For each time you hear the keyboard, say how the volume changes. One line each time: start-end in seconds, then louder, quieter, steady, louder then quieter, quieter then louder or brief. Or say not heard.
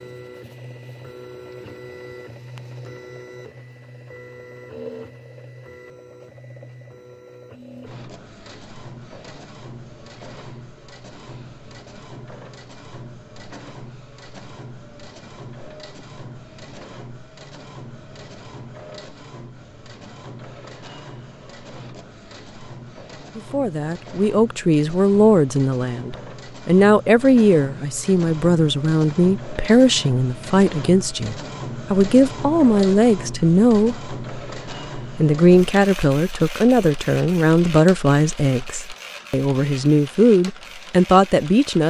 not heard.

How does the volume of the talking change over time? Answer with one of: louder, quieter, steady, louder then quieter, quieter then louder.
steady.